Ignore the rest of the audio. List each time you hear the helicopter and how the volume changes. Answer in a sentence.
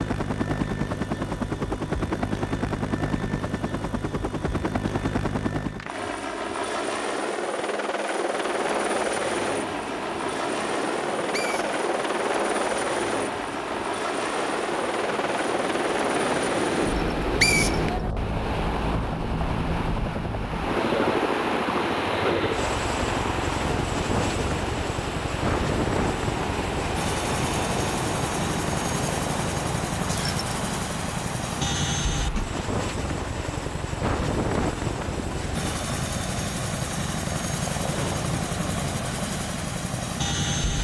You can hear the helicopter from 0.0 to 40.7 s, at a steady volume.